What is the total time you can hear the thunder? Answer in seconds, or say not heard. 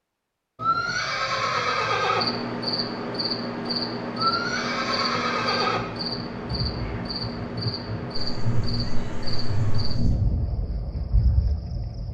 5 s.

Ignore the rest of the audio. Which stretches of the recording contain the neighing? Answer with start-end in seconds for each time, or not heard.
0.6-2.2, 4.2-5.8, 8.2-10.2.